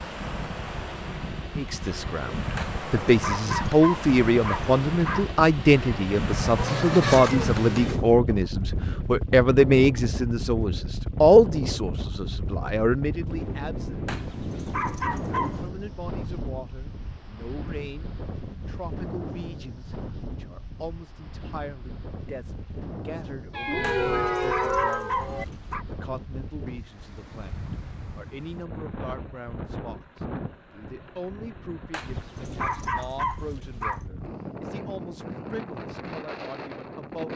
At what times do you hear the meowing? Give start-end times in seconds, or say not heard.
6.5-8.1, 23.5-25.4.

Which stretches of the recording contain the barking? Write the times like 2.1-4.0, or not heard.
2.5-5.3, 14.1-15.6, 23.8-25.9, 31.9-34.0.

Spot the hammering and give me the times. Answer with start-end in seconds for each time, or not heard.
not heard.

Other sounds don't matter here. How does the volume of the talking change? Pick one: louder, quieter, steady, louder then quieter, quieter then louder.
quieter.